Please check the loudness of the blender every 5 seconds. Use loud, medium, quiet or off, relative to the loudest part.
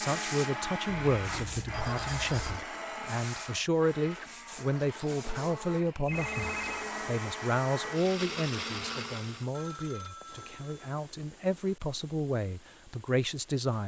loud, loud, off.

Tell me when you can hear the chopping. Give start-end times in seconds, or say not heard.
not heard.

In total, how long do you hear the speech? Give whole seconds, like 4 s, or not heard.
14 s.